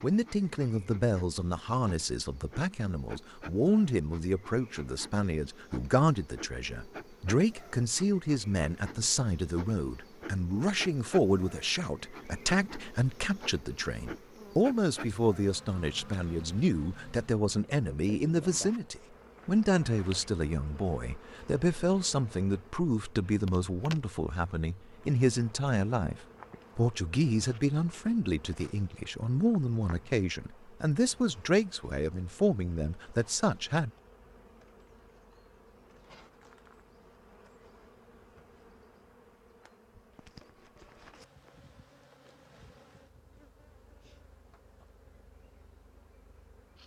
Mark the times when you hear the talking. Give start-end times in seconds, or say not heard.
0.0-33.9.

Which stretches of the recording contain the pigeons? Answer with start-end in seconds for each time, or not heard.
not heard.